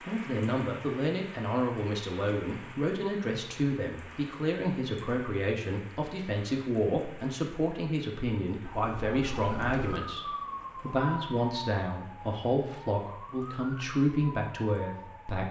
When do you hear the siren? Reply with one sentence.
You can hear the siren from 8.6 to 15.4 s.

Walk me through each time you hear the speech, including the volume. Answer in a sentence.
The speech can be heard from 0.1 to 15.4 s, at a steady volume.